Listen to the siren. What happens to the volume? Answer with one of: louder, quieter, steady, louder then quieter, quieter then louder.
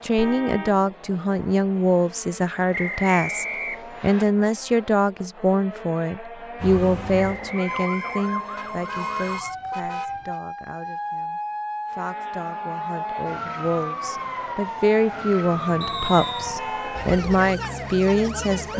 steady.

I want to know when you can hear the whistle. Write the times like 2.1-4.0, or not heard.
2.7-4.2, 7.2-8.7, 15.8-16.5.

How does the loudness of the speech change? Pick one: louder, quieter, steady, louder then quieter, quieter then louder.
quieter then louder.